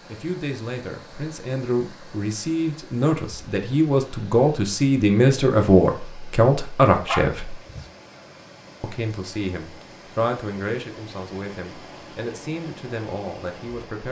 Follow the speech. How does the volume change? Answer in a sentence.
The loudness of the speech goes up, then down.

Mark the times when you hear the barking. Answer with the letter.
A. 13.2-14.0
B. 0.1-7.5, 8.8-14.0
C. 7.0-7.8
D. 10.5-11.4
C.